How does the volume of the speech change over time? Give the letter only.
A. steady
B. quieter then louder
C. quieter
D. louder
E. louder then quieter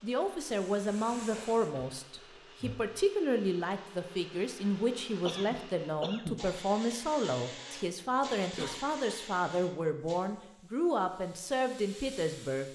A.